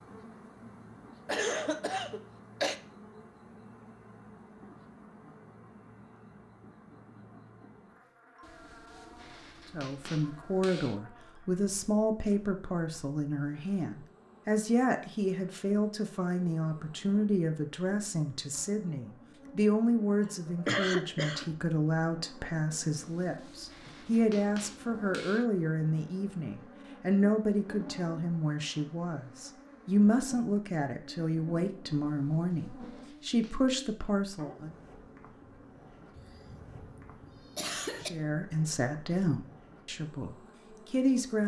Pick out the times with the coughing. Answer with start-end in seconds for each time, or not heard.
1.2-2.8, 20.6-21.4, 36.1-38.1.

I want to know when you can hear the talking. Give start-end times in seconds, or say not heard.
9.7-34.8, 38.0-41.4.